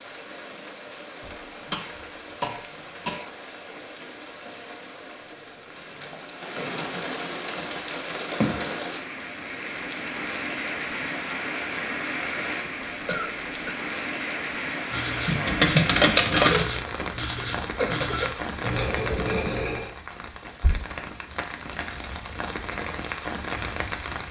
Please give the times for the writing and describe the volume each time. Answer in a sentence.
The writing can be heard from 14.9 to 19.9 s, at a steady volume.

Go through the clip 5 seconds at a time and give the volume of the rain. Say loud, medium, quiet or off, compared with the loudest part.
medium, loud, loud, loud, loud.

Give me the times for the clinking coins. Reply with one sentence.
You can hear the clinking coins from 15.2 to 16.6 s.